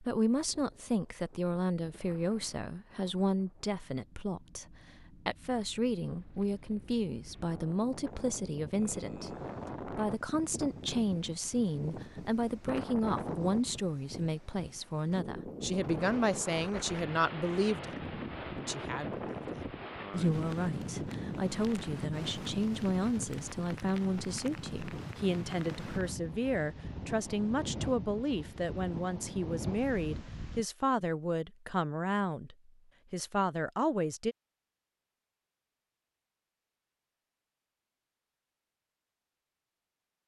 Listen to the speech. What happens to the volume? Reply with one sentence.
The loudness of the speech stays about the same.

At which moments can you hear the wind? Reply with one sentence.
You can hear the wind from 0.2 to 30.6 s.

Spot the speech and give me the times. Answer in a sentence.
The speech can be heard from 0.0 to 34.4 s.